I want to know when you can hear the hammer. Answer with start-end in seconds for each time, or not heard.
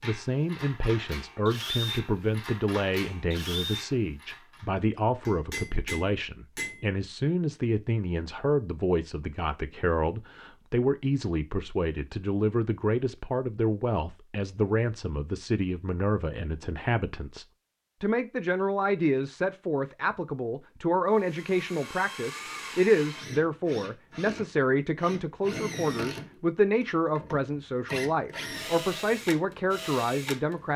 5.2-6.9.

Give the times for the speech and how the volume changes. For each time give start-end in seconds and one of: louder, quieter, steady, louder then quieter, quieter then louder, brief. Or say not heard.
0.0-30.7 steady.